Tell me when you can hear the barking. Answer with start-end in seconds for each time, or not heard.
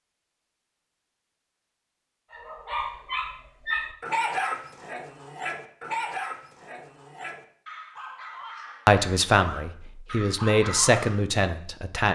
2.3-11.2.